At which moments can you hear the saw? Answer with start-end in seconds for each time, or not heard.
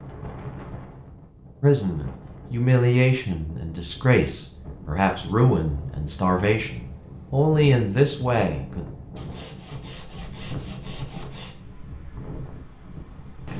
9.2-11.6.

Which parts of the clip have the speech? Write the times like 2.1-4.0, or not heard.
1.6-8.8.